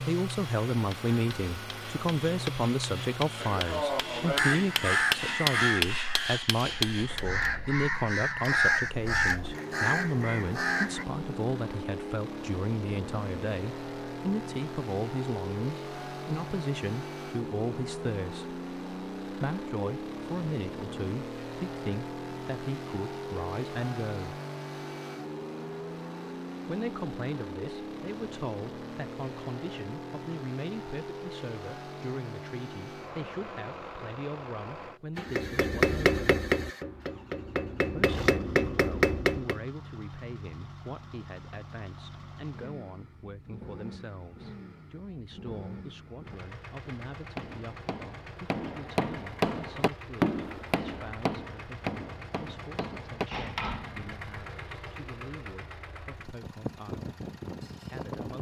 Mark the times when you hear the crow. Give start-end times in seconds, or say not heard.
4.3-11.1.